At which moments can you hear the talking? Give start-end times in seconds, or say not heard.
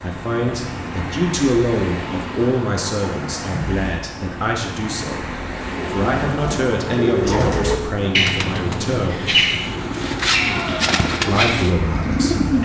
0.0-9.3, 11.2-12.5.